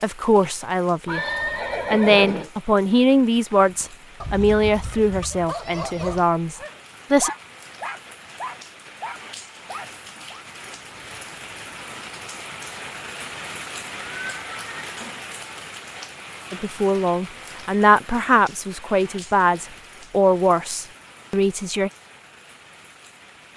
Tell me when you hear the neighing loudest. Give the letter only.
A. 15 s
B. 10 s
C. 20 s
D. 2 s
D.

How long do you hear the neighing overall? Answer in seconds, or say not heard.
3 s.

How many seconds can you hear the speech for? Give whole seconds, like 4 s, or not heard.
12 s.